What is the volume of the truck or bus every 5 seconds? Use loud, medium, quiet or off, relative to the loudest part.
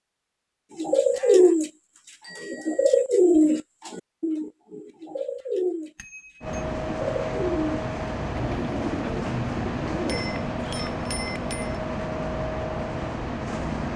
off, loud, loud.